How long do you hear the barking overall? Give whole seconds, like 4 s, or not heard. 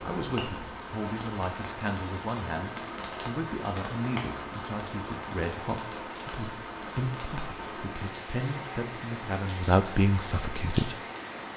not heard.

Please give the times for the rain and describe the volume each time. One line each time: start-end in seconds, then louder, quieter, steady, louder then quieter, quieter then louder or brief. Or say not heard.
0.0-11.5 steady.